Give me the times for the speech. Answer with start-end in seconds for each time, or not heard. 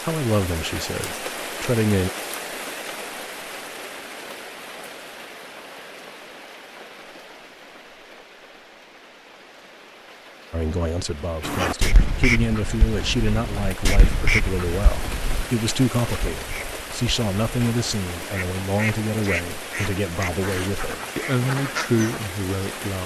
0.0-2.1, 10.5-23.0.